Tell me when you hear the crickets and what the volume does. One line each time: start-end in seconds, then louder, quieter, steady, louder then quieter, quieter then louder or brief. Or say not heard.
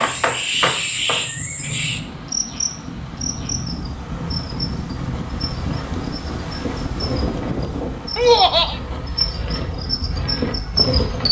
0.0-11.2 quieter then louder.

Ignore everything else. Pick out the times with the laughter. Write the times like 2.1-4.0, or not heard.
8.2-8.8.